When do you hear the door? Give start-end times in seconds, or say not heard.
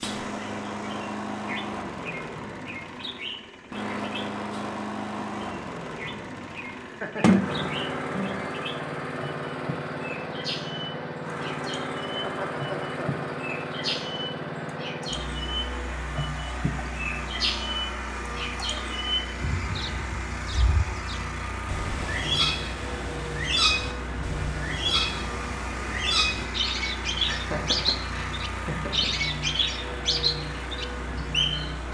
7.2-8.4.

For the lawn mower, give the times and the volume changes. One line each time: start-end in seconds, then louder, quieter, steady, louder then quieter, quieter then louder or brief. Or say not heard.
0.0-31.8 steady.